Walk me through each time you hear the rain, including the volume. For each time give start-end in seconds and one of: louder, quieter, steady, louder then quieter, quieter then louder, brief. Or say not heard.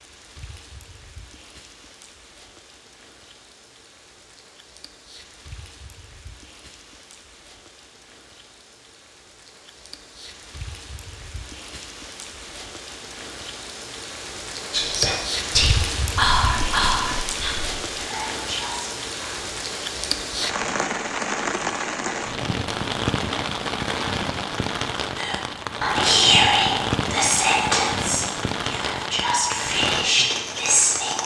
0.0-31.2 louder.